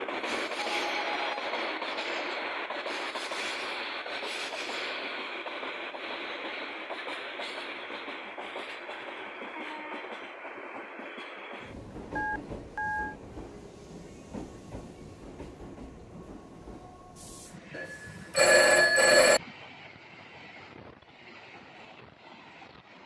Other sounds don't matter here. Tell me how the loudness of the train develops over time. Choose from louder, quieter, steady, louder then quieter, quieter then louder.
quieter.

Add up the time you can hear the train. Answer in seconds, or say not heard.
23 s.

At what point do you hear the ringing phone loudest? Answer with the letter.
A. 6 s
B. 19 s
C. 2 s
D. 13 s
B.